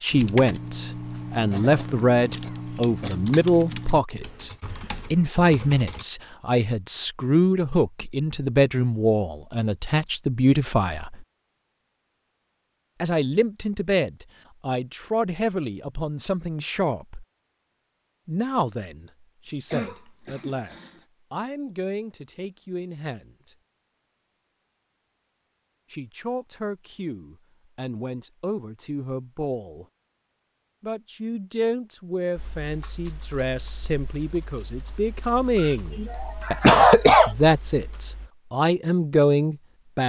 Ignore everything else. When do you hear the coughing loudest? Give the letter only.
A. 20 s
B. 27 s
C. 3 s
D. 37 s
D.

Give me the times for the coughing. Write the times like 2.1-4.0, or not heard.
1.5-3.2, 19.4-21.0, 35.5-37.3.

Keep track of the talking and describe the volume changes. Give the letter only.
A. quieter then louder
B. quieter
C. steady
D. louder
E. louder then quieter
A.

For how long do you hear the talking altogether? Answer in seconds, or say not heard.
33 s.